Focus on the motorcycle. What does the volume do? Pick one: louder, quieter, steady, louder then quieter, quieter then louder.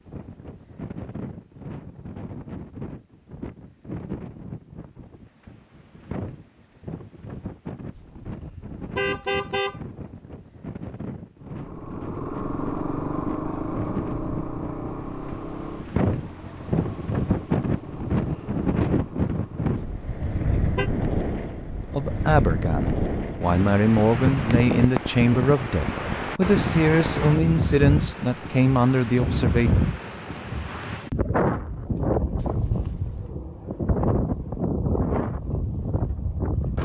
quieter.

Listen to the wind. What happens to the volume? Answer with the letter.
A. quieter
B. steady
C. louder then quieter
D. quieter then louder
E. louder
E.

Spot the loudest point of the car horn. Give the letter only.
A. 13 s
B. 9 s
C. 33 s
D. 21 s
B.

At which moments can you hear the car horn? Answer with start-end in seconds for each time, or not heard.
8.0-9.8, 19.8-20.9, 32.4-33.3.